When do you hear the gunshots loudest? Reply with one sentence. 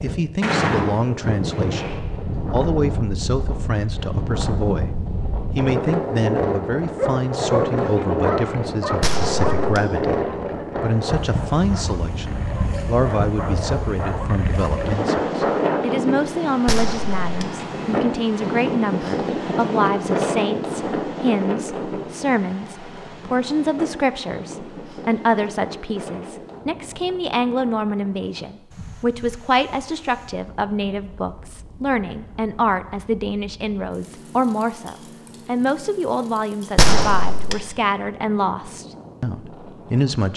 The volume of the gunshots peaks at 37 seconds.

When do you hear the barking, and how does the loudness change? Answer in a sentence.
You can hear the barking from 6.9 to 15.9 s, getting quieter then louder.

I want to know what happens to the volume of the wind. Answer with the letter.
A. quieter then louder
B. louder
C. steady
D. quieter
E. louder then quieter
D.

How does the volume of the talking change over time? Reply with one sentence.
The volume of the talking stays about the same.